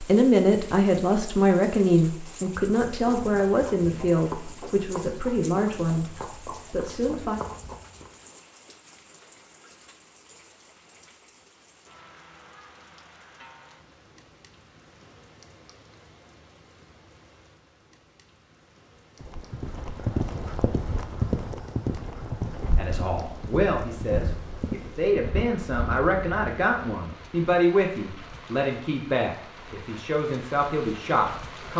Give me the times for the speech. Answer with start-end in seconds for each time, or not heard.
0.0-7.4, 22.8-31.7.